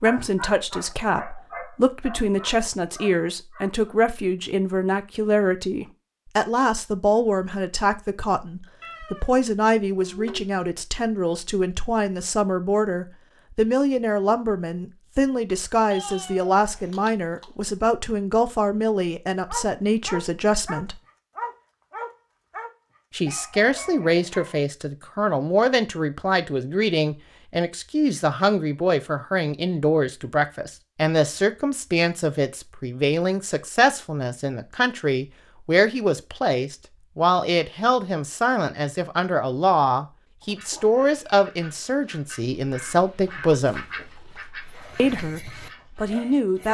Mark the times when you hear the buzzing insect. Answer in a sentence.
You can't hear the buzzing insect here.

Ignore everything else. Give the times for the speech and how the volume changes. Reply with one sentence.
The speech can be heard from 0.0 to 21.0 s, at a steady volume; from 23.1 to 43.9 s, at a steady volume; and briefly from 45.0 to 46.6 s.